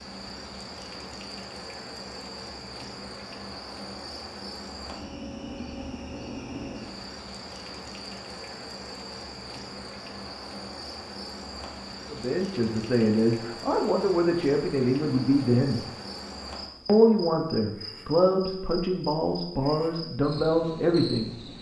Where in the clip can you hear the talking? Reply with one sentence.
The talking can be heard from 12.1 to 15.8 s and from 16.9 to 21.3 s.